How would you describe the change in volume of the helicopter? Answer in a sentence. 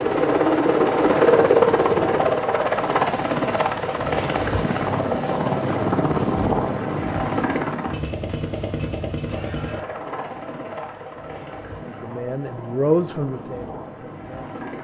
The volume of the helicopter goes down.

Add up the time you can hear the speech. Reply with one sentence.
You can hear the speech for 3 seconds altogether.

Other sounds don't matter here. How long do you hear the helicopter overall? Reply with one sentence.
The helicopter can be heard for 15 seconds in total.